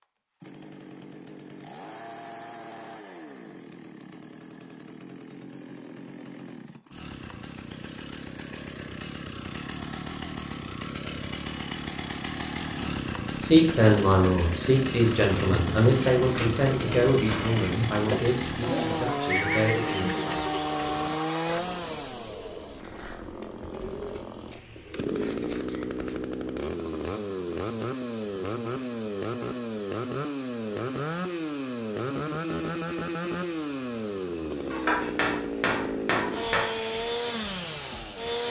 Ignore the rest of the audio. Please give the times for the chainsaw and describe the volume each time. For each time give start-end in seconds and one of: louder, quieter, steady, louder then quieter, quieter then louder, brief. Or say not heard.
0.0-38.4 louder.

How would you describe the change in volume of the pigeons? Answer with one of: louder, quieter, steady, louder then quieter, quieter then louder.
quieter.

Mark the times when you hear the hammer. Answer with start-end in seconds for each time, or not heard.
34.7-36.7.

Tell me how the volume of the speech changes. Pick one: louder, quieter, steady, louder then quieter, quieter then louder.
quieter.